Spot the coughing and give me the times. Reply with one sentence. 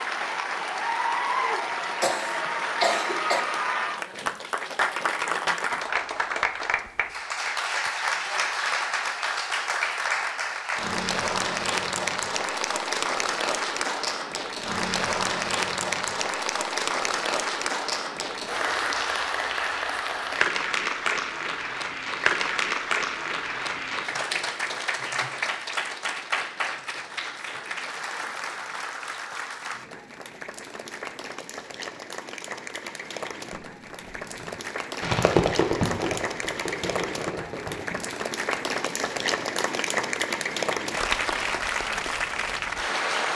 You can hear the coughing from 1.4 to 3.4 s.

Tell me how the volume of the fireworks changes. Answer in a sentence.
The loudness of the fireworks goes up, then down.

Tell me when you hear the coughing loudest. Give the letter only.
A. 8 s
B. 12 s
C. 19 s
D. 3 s
D.